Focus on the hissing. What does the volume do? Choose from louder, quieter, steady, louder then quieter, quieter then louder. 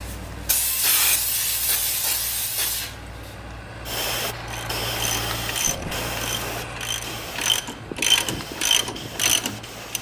quieter.